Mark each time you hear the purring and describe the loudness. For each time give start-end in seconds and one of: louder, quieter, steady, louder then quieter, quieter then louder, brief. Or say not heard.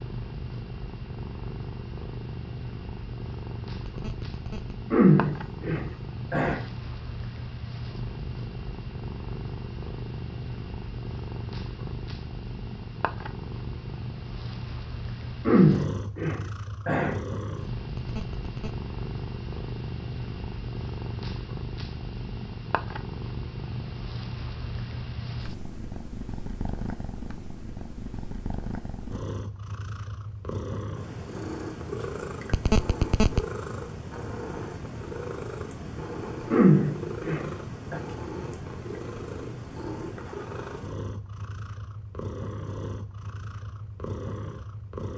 0.0-45.1 steady.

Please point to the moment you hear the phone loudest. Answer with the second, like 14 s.
33 s.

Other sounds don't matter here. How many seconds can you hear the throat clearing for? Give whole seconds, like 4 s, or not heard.
5 s.